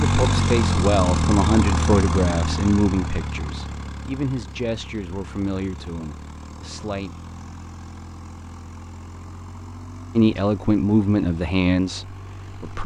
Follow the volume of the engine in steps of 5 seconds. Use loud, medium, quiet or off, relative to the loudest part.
loud, quiet, quiet.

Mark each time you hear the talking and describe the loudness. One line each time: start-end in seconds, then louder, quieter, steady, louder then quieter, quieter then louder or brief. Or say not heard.
0.0-7.1 quieter
10.2-12.8 brief.